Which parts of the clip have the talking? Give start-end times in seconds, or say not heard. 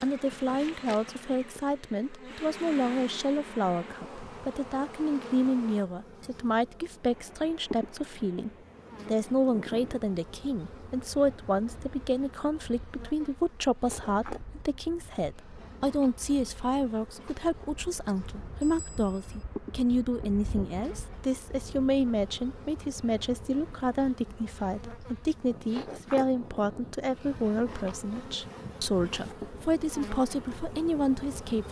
0.0-31.6.